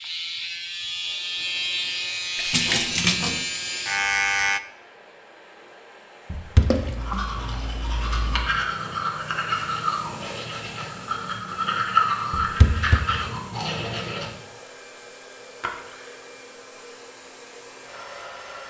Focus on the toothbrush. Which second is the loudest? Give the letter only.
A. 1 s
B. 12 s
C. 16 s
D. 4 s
B.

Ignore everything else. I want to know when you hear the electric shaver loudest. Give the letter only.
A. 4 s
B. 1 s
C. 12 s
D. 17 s
A.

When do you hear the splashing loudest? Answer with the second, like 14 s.
3 s.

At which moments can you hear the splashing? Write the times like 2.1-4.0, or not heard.
2.4-3.5, 6.6-7.2, 15.6-16.2.